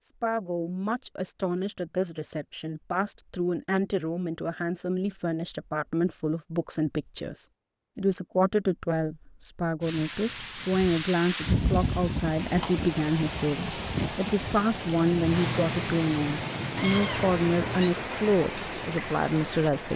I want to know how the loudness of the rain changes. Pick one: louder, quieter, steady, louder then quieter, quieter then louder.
steady.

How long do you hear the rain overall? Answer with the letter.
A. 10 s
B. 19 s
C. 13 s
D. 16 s
A.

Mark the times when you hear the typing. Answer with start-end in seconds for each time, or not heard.
not heard.